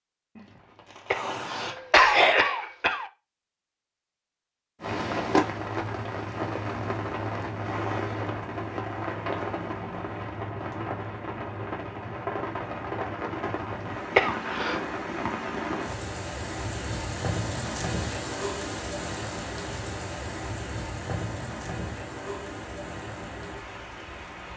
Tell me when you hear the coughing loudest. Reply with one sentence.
The loudest moment of the coughing is at 2 seconds.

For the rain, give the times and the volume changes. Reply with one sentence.
You can hear the rain from 4.8 to 24.5 s, getting quieter.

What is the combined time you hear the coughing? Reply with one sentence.
The coughing can be heard for 3 seconds in total.